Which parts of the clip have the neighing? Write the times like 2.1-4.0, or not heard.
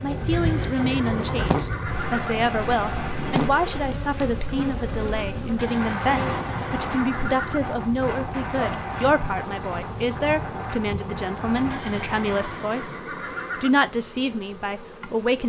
0.3-2.4, 5.5-7.6, 11.7-13.7.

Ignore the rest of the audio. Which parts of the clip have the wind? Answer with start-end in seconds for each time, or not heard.
0.0-12.6.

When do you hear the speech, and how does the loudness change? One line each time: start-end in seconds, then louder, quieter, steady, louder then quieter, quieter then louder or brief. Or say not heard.
0.0-15.4 steady.